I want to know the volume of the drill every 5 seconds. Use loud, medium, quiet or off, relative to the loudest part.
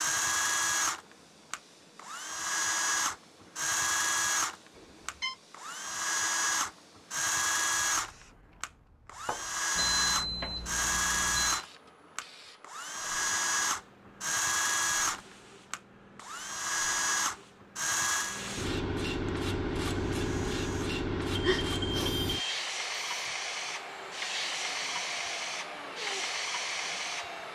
loud, loud, loud, loud, quiet, quiet.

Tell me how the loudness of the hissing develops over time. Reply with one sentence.
The volume of the hissing goes up.